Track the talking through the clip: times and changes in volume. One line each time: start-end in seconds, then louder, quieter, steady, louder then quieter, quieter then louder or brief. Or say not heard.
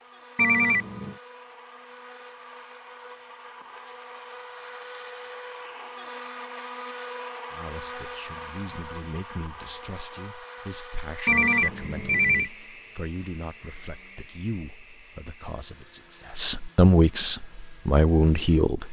7.5-18.8 louder.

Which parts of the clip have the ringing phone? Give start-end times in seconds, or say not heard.
0.3-1.1, 11.2-12.5.